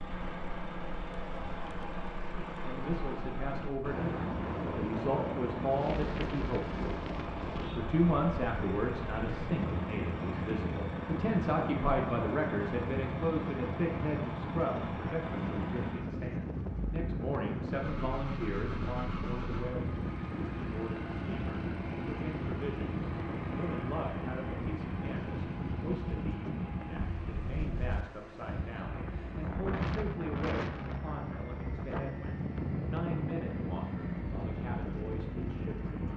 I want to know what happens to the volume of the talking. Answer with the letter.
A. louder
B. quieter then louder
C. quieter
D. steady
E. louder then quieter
C.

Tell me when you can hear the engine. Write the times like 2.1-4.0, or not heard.
0.0-36.1.